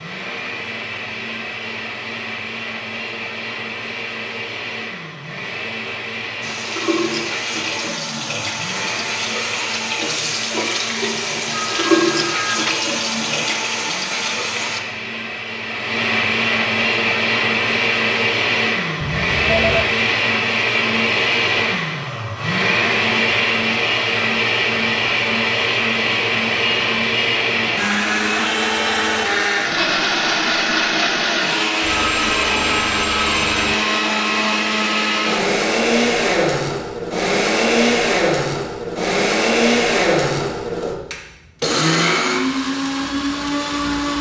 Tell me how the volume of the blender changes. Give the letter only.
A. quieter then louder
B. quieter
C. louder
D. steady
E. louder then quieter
C.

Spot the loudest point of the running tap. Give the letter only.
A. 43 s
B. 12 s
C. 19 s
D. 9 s
B.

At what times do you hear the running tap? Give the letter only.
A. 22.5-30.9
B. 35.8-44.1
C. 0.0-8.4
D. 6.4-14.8
D.